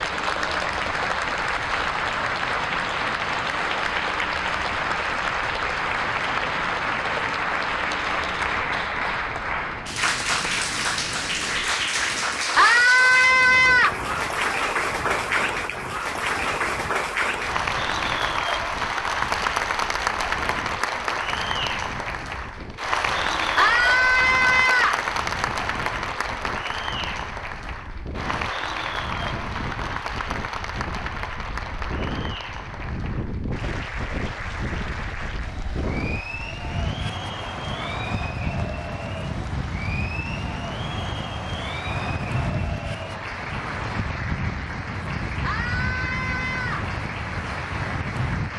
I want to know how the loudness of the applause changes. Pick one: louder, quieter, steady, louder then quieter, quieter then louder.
quieter.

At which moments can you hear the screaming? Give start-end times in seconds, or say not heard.
12.6-13.9, 23.6-25.1, 45.4-46.9.